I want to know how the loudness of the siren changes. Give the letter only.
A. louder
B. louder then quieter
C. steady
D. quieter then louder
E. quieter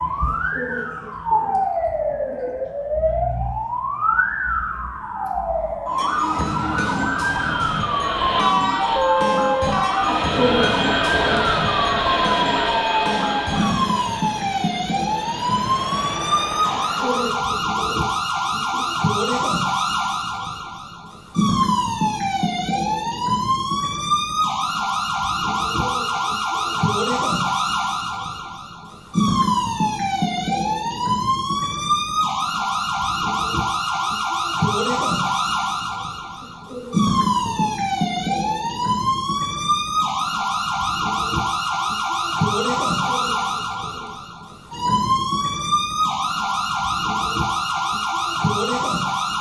C.